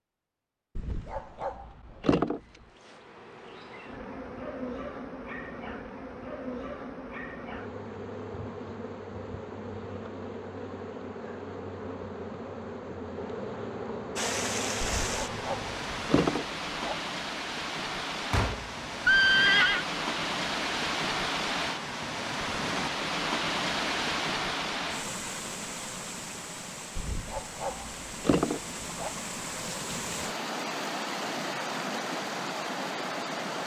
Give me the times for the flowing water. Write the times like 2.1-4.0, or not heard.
14.2-33.6.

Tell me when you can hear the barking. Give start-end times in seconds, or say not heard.
0.8-2.4, 14.8-16.9, 26.9-29.1.